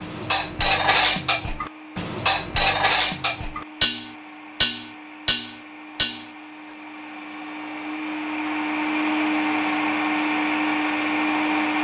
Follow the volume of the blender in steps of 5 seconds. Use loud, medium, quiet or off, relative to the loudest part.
quiet, medium, loud.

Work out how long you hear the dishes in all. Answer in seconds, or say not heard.
7 s.